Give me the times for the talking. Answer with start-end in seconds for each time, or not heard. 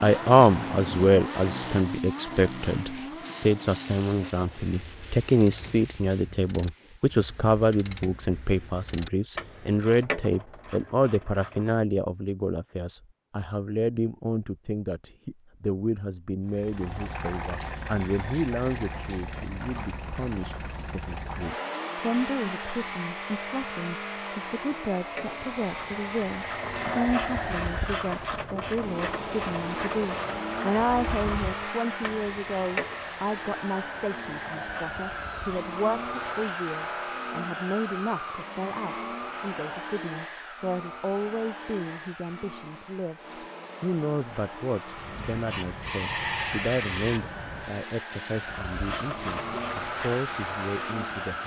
0.0-43.1, 43.8-51.4.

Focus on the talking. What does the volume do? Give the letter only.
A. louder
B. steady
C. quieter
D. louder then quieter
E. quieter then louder
C.